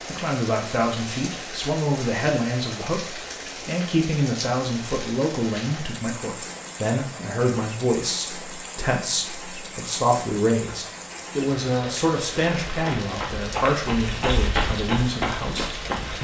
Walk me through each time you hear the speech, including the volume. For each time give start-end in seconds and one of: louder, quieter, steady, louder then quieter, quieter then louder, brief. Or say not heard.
0.1-16.1 steady.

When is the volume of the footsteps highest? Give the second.
14 s.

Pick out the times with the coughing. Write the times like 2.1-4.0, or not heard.
not heard.